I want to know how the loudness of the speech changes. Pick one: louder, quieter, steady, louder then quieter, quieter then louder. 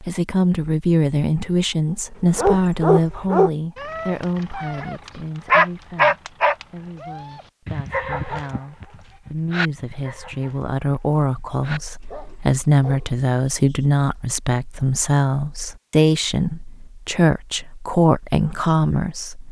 quieter then louder.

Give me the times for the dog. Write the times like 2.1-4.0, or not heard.
2.4-13.8.